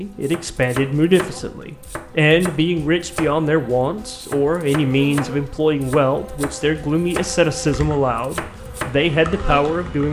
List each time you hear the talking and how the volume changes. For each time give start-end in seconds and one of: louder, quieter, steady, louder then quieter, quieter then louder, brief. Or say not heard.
0.0-10.0 steady.